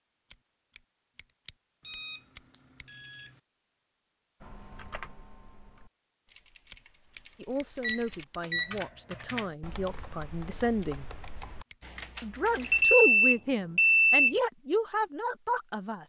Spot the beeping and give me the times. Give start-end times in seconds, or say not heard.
1.9-3.3, 7.8-8.7, 12.6-14.3.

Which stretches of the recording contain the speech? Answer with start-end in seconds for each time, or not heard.
7.3-11.1, 12.2-16.0.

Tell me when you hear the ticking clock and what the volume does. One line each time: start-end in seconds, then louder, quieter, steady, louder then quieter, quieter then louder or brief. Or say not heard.
not heard.